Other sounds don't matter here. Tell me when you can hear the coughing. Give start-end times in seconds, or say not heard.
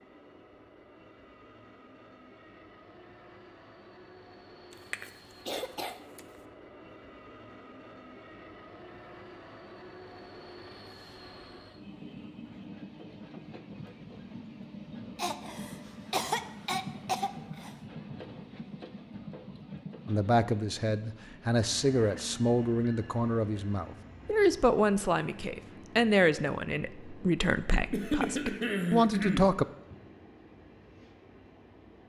4.9-6.0, 15.2-17.7, 27.9-29.9.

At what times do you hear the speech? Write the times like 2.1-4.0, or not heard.
20.1-29.6.